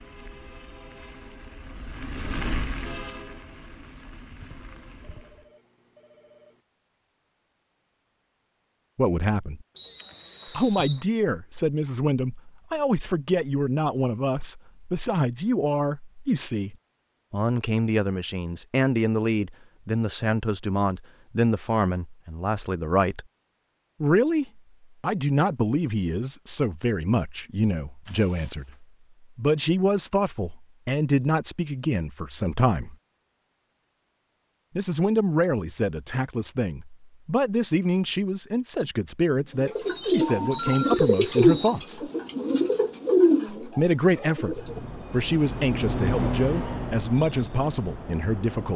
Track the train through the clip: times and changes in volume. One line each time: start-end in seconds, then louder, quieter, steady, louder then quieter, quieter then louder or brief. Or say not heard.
0.0-5.5 louder then quieter
44.3-48.7 louder then quieter.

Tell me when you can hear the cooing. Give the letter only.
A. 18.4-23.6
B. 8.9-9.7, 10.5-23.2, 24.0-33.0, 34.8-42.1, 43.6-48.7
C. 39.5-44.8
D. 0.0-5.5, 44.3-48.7
C.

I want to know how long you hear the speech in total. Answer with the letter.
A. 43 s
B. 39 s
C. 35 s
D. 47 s
C.